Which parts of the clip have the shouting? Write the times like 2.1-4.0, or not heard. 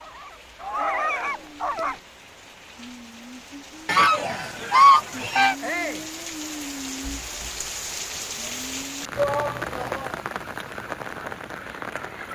0.6-1.5, 5.6-6.0, 9.2-10.2.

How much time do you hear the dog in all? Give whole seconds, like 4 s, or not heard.
2 s.